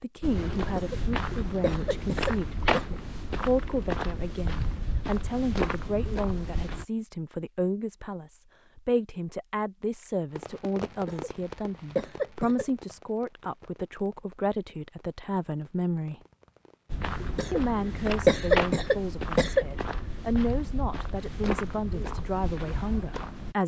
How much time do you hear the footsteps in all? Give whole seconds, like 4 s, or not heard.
13 s.